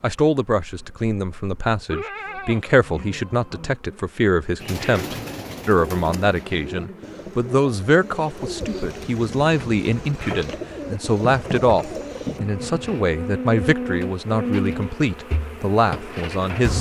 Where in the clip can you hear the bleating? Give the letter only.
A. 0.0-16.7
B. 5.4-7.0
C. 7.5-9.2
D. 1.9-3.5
D.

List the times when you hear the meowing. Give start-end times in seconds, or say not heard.
not heard.